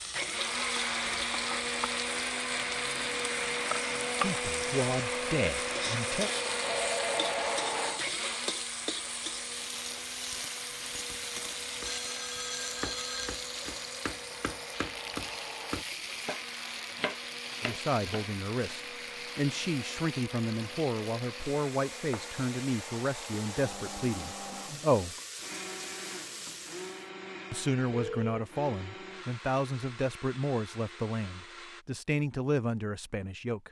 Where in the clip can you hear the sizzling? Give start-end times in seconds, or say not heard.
0.0-27.1.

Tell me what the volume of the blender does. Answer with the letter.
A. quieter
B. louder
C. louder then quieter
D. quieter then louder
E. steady
A.